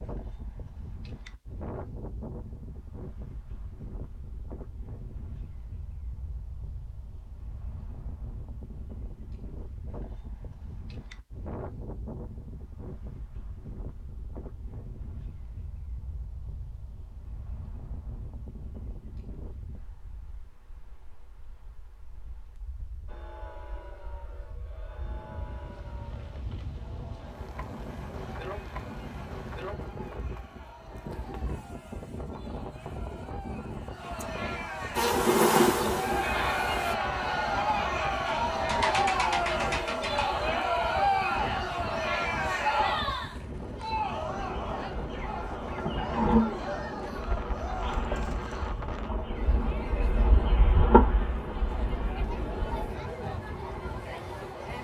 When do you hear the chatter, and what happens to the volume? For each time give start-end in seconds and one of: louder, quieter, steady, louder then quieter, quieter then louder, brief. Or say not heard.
23.1-54.7 louder then quieter.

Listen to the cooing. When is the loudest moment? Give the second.
39 s.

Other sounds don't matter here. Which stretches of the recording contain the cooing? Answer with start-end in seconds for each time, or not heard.
38.2-40.6.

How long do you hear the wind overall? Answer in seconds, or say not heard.
55 s.